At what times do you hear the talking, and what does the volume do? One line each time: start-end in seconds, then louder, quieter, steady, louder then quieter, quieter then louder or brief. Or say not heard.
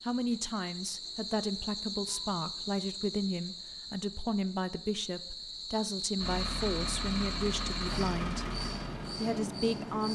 0.0-8.5 steady
9.2-10.0 brief.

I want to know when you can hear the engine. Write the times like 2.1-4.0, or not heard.
6.2-10.0.